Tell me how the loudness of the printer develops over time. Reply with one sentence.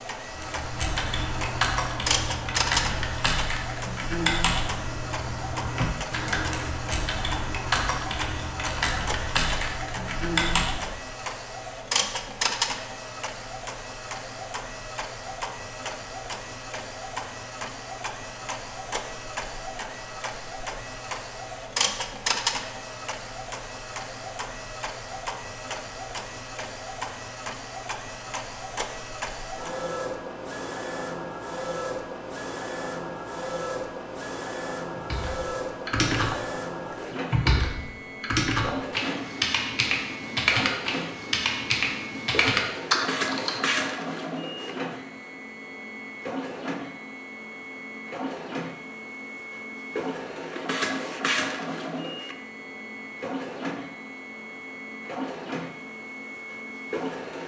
The volume of the printer stays about the same.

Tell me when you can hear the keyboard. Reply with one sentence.
The keyboard can be heard from 0.3 to 11.1 s and from 35.0 to 43.8 s.